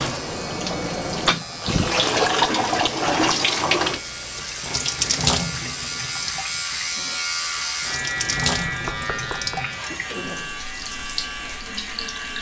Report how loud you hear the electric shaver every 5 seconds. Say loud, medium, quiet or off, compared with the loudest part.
medium, loud, medium.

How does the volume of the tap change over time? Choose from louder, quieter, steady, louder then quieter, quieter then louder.
quieter.